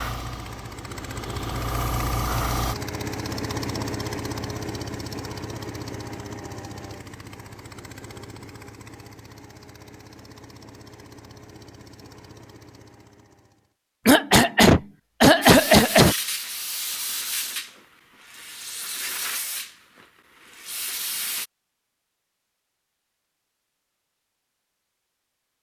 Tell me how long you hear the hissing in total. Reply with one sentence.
You can hear the hissing for 9 seconds altogether.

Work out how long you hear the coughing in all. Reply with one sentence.
You can hear the coughing for 2 seconds altogether.